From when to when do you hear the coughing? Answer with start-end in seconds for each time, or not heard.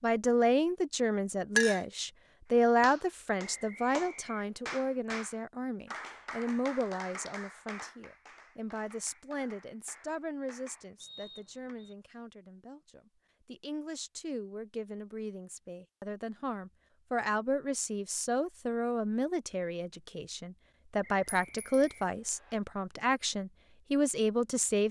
not heard.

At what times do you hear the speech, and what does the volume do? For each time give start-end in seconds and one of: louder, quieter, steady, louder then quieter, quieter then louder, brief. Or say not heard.
0.0-24.8 quieter then louder.